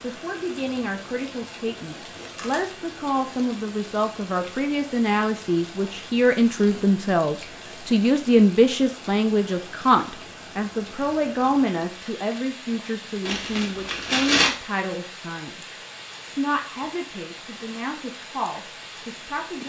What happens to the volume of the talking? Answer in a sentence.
The loudness of the talking goes up, then down.